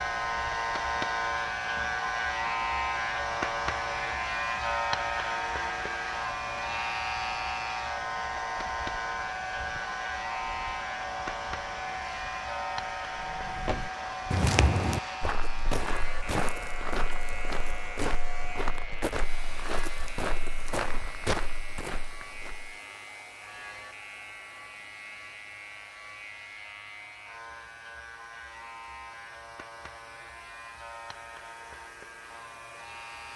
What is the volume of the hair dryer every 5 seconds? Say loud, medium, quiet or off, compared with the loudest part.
loud, loud, loud, medium, quiet, quiet, quiet.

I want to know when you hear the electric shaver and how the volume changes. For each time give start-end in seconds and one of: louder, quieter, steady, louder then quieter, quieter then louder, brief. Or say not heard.
0.0-33.3 quieter.